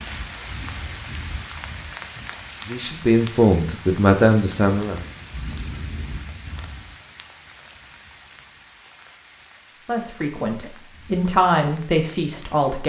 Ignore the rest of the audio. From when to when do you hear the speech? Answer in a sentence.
The speech can be heard from 2.6 to 5.0 s and from 9.8 to 12.8 s.